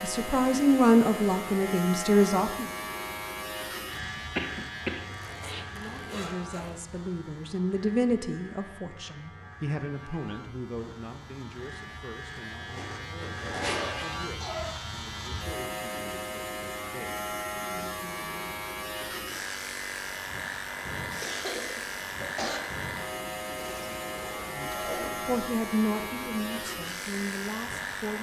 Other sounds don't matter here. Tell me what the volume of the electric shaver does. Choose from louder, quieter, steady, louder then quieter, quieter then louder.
quieter then louder.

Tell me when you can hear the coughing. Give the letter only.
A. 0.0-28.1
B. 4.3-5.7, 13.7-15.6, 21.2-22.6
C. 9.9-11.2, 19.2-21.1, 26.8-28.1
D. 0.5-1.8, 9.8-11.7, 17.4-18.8
B.